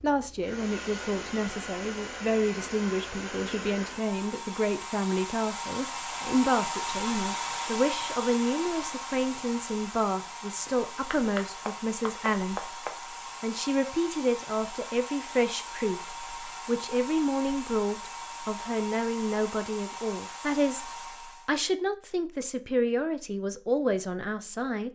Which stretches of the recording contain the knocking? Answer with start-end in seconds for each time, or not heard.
10.7-13.0.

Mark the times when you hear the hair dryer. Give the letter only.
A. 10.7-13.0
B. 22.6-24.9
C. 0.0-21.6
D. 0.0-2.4
C.